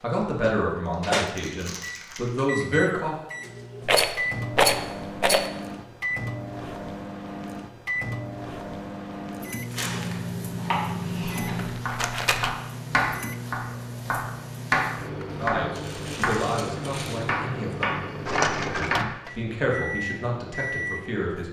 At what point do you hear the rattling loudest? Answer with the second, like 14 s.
5 s.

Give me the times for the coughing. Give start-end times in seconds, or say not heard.
not heard.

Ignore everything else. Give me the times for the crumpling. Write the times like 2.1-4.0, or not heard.
0.8-2.3, 9.7-10.2, 15.8-17.4.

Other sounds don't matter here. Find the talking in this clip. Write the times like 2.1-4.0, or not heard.
0.0-3.1, 15.3-18.0, 18.8-21.4.